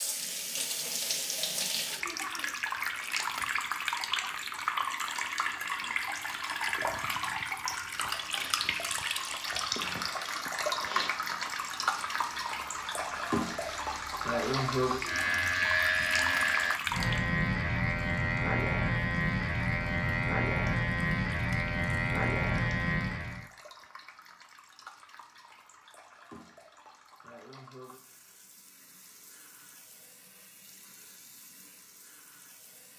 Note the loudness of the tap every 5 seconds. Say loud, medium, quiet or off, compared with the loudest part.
loud, loud, loud, loud, quiet, quiet, quiet.